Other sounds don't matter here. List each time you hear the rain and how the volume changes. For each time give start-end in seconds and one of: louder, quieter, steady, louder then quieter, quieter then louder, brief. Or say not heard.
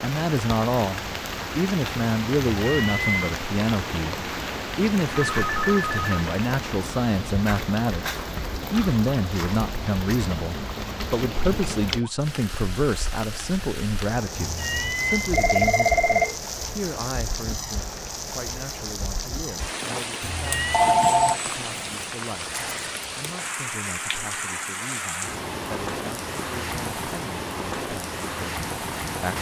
0.0-29.3 steady.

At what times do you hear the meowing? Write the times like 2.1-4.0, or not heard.
2.6-3.4, 14.3-15.4, 20.2-20.9.